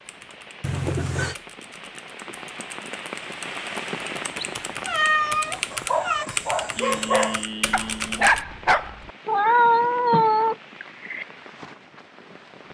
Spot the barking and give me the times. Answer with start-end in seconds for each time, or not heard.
5.5-9.1.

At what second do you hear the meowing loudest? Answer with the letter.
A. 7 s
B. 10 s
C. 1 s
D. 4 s
B.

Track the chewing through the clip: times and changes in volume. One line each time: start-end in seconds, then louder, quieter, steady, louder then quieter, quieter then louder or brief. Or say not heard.
not heard.